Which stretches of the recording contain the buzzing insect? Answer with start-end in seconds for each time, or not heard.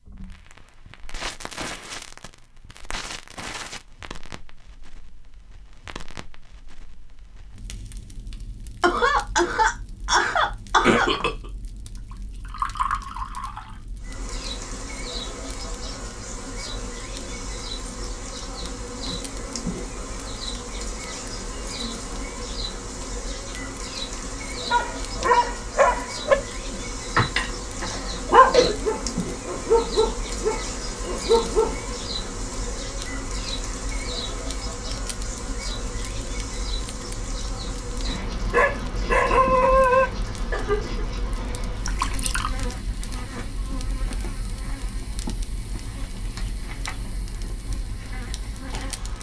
14.0-49.1.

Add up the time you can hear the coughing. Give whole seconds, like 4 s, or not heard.
4 s.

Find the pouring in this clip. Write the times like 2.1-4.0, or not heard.
12.1-13.8, 41.9-42.5.